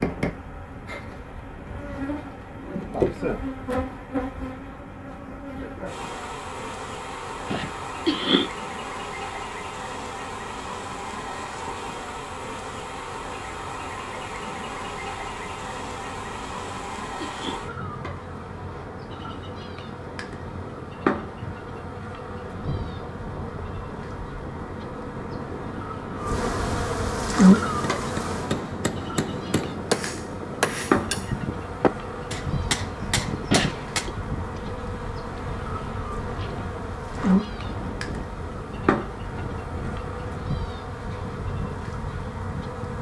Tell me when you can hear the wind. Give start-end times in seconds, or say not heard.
0.0-42.9.